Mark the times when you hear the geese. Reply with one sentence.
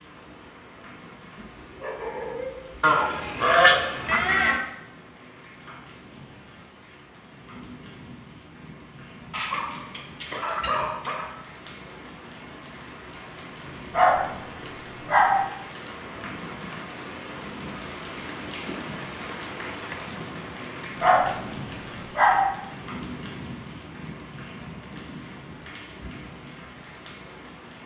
The geese can be heard from 2.8 to 4.6 s.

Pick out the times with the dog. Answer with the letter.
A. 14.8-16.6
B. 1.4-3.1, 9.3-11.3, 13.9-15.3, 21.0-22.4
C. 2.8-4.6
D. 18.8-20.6
B.